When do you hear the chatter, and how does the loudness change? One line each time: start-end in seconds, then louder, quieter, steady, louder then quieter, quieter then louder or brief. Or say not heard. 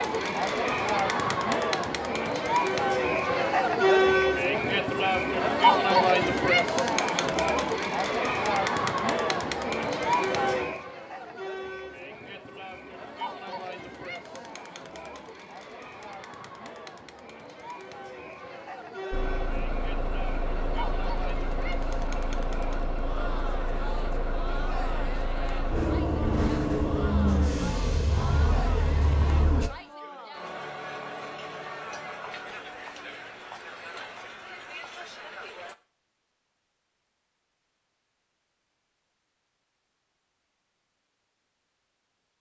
0.0-35.8 quieter.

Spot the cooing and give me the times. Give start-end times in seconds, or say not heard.
not heard.